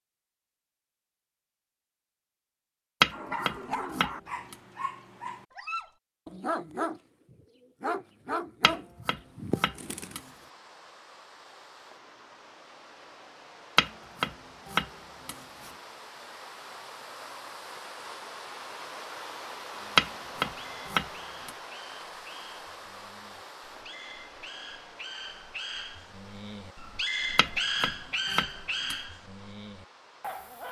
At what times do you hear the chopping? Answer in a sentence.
You can hear the chopping from 3.0 to 4.5 s, from 8.6 to 10.2 s, from 13.8 to 15.3 s, from 19.9 to 21.5 s and from 27.4 to 28.9 s.